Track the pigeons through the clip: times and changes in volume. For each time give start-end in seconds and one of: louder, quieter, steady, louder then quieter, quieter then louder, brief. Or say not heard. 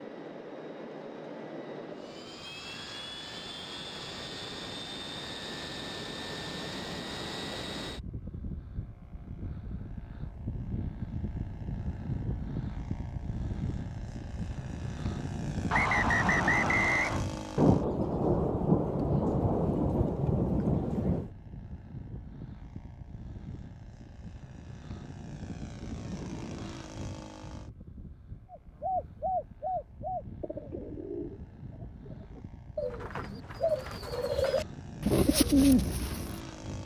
28.5-36.4 quieter then louder.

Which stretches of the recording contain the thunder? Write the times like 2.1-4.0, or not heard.
17.6-21.3.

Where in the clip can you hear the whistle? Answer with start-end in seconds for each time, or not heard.
15.7-17.2.